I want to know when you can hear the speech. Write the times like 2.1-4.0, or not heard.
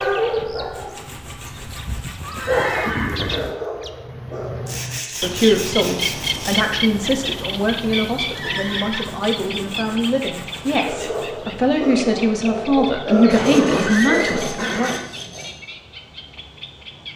5.0-14.9.